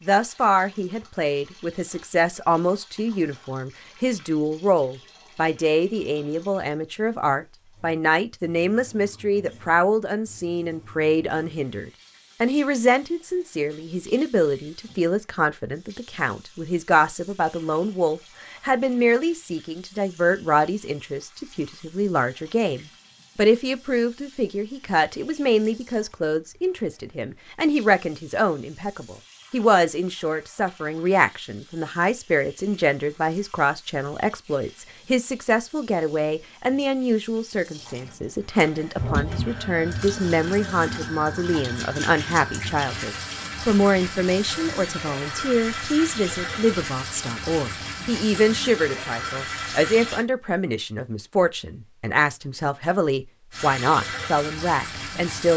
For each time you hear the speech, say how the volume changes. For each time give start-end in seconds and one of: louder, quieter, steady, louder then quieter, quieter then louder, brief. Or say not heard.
0.1-55.5 steady.